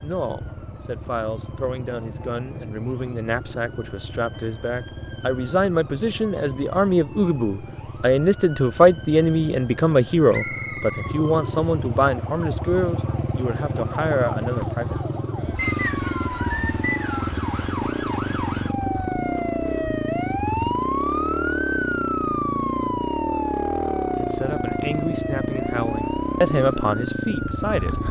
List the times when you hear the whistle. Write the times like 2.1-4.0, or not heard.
10.3-11.2, 15.6-17.4.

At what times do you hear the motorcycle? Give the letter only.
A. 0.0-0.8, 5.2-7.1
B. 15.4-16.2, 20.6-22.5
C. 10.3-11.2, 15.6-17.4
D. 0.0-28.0
D.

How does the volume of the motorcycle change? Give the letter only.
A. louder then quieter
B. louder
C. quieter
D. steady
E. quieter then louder
B.